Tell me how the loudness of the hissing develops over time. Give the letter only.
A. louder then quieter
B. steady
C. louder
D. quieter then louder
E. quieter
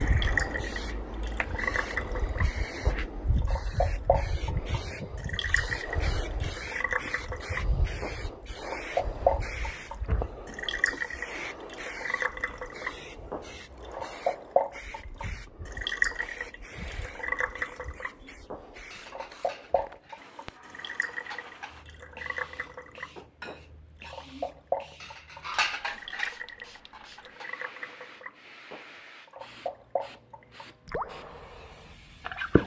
E.